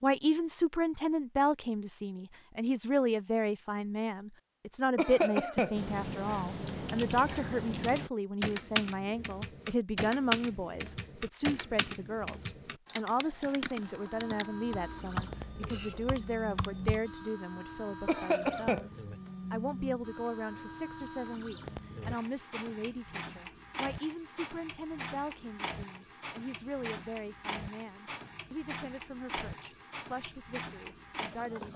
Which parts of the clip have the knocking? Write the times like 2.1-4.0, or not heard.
not heard.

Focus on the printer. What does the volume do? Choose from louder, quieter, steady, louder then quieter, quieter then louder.
steady.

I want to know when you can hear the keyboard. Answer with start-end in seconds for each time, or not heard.
5.8-17.0.